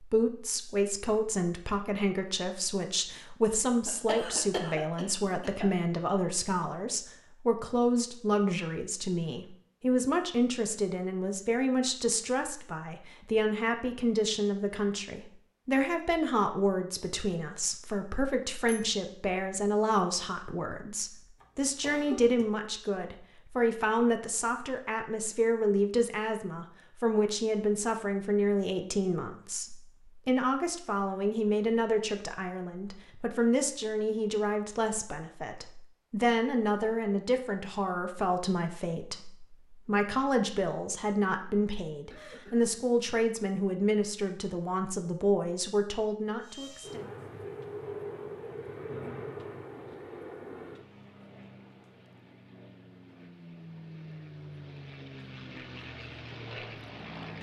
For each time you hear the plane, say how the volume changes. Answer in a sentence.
The plane can be heard from 46.4 to 57.3 s, getting quieter then louder.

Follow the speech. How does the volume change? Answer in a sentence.
The volume of the speech stays about the same.